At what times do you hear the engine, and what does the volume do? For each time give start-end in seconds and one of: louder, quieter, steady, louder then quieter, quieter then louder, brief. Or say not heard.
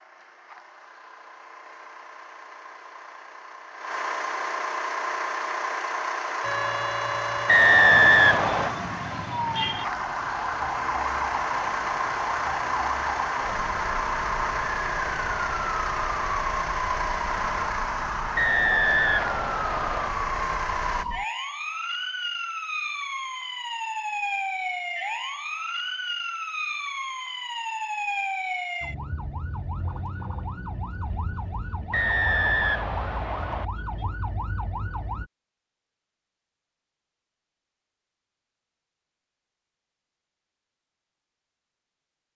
0.0-21.1 louder.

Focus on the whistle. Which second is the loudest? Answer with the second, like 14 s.
8 s.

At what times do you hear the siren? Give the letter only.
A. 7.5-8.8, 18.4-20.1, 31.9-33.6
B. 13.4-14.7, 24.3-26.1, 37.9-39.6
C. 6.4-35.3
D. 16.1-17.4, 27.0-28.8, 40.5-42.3
C.